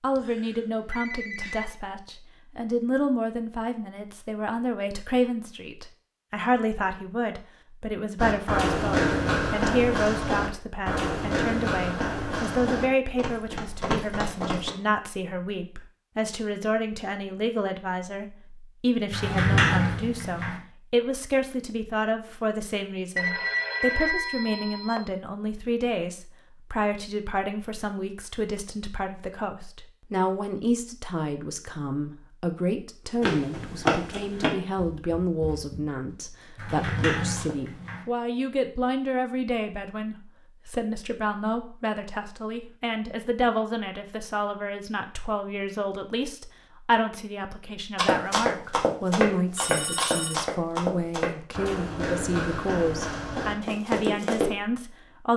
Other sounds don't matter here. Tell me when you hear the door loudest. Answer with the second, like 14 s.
20 s.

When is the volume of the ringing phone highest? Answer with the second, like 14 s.
24 s.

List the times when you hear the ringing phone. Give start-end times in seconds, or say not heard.
0.1-1.6, 23.1-25.1, 49.5-50.4.